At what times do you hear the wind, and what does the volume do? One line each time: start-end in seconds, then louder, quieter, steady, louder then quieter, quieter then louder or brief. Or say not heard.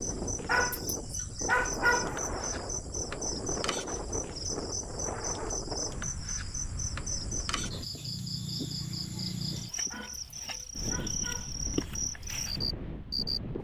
0.0-13.6 quieter then louder.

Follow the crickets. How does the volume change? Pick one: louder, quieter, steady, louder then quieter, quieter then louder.
steady.